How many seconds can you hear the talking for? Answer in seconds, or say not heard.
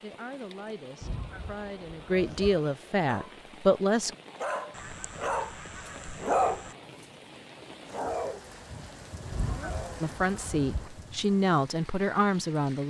7 s.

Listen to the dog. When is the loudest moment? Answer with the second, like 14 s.
6 s.